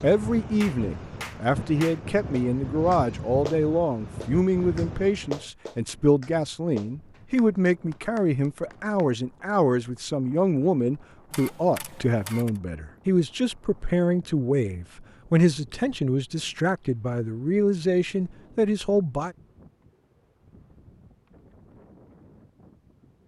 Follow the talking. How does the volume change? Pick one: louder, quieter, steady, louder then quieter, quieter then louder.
steady.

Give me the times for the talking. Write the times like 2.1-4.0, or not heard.
0.0-19.4.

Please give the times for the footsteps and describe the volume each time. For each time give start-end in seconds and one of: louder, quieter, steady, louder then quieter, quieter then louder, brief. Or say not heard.
not heard.